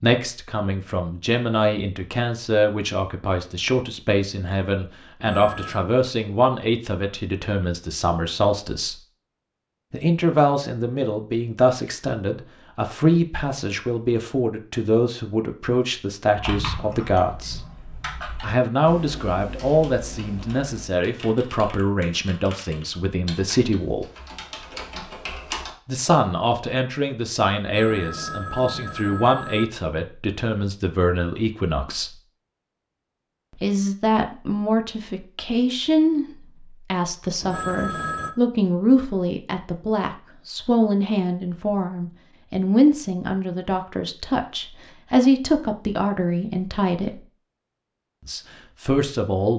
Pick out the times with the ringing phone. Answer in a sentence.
The ringing phone can be heard from 5.2 to 5.8 s, from 27.6 to 29.6 s and from 37.4 to 38.4 s.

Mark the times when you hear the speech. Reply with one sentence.
The speech can be heard from 0.0 to 8.9 s, from 9.9 to 17.6 s, from 18.4 to 24.1 s, from 25.9 to 32.1 s, from 33.5 to 47.2 s and from 48.2 to 49.5 s.